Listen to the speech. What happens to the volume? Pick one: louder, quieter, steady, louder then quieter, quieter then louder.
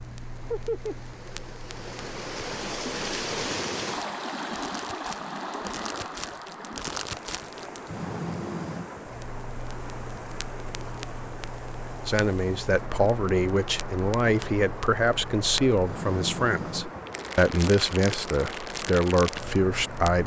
steady.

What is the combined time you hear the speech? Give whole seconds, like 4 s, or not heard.
8 s.